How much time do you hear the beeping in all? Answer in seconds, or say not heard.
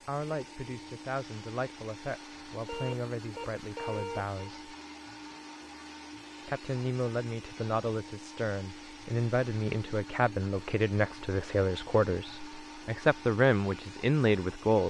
2 s.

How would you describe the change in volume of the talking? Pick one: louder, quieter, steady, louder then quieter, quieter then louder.
louder.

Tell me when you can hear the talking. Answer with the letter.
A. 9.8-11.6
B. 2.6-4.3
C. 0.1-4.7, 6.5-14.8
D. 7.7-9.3
C.